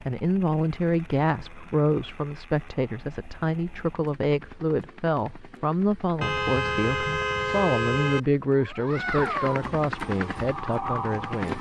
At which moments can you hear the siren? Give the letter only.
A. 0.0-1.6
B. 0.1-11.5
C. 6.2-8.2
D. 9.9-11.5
D.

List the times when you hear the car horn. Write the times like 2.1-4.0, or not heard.
6.2-8.2.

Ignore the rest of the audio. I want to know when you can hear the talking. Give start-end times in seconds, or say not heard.
0.1-11.5.